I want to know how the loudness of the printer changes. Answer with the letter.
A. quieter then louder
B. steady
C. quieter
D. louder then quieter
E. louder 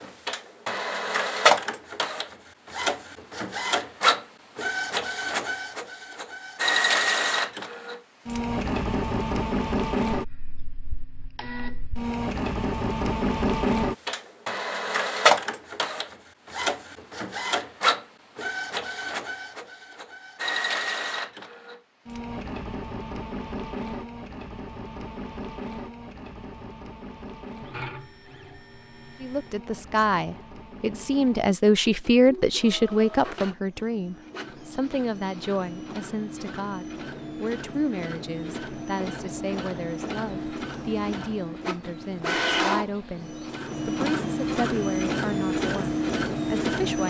A.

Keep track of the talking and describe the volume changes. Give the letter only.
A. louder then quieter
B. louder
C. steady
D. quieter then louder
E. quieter
E.